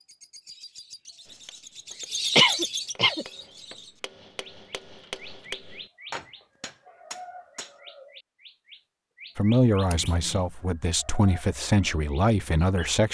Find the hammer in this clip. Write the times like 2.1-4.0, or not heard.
1.2-7.8.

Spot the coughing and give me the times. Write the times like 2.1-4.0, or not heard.
2.4-3.2, 9.9-10.4.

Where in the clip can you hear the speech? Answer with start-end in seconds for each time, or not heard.
9.3-13.0.